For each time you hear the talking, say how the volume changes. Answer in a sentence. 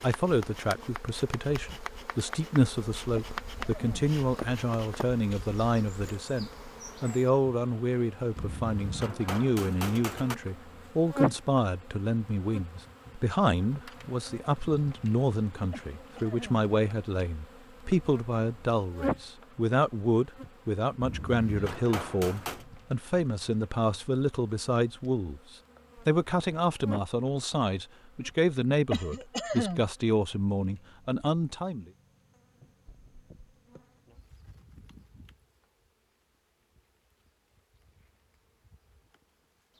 The talking can be heard from 0.0 to 31.9 s, at a steady volume.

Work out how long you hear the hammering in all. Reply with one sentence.
You can hear the hammering for 4 seconds altogether.